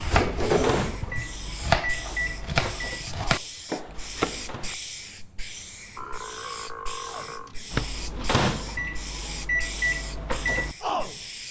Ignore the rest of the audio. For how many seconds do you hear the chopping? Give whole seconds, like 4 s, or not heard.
5 s.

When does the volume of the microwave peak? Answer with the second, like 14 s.
10 s.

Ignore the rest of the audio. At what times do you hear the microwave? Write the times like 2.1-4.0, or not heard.
0.0-4.8, 7.0-11.4.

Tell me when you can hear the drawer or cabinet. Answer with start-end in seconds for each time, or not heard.
0.1-0.9.